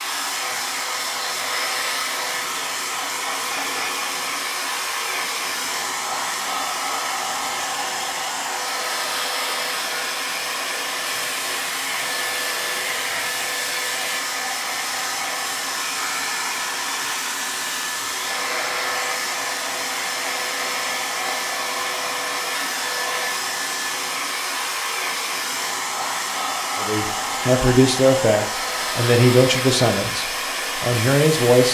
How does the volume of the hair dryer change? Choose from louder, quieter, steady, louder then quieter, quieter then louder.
steady.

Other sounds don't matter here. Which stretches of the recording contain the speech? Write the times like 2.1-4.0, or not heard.
26.8-31.7.